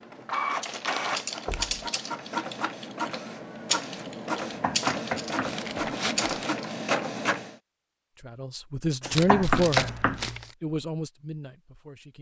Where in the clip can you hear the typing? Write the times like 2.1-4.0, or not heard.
0.6-6.8.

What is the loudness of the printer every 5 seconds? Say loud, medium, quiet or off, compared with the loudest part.
loud, loud, off.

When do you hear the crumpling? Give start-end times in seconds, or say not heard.
0.7-1.6, 5.5-6.5, 9.1-10.6.